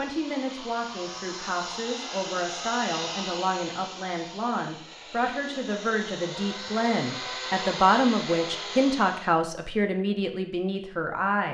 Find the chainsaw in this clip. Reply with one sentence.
The chainsaw can be heard from 0.0 to 9.3 s.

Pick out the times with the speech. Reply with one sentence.
You can hear the speech from 0.0 to 11.4 s.